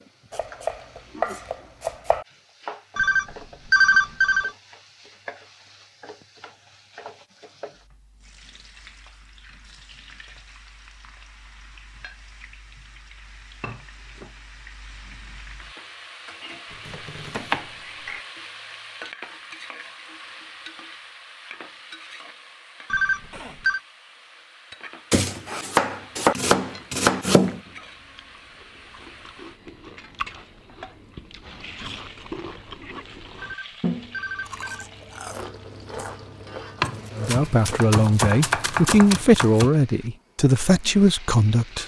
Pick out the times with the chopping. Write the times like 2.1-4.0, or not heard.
0.3-2.2, 16.9-17.6, 25.1-27.6, 36.8-39.7.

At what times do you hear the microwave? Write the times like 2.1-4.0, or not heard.
not heard.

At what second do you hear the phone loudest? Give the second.
4 s.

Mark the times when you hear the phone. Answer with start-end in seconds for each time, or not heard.
3.0-4.5, 22.9-23.8, 33.4-34.9.